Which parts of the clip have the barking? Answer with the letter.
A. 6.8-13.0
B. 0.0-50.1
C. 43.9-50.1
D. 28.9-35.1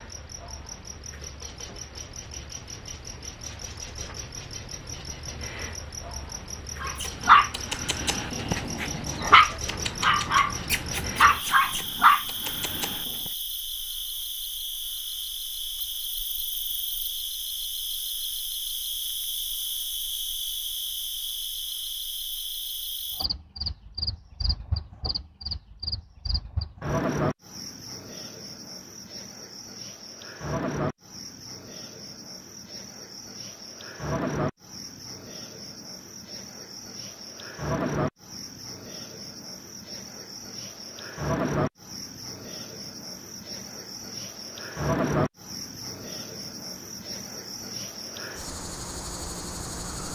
A.